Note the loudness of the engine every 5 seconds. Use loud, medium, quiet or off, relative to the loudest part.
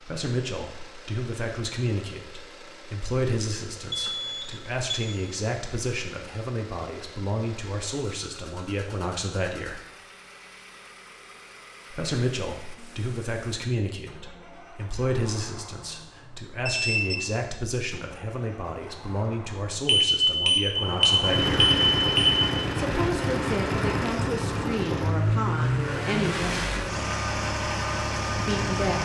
quiet, quiet, quiet, quiet, loud, loud.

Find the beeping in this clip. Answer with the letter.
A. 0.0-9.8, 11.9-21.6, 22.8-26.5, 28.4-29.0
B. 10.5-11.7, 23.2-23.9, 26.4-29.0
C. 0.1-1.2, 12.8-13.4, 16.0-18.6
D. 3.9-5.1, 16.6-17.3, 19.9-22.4
D.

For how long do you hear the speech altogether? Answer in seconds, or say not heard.
24 s.